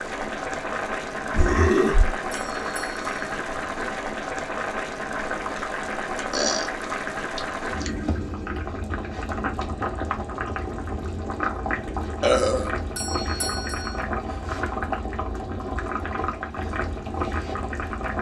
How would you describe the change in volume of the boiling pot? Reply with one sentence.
The volume of the boiling pot stays about the same.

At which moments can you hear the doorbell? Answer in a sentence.
The doorbell can be heard from 2.3 to 3.1 s and from 12.9 to 14.0 s.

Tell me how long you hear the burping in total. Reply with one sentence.
You can hear the burping for 2 seconds altogether.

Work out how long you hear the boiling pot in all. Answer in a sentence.
You can hear the boiling pot for 18 seconds altogether.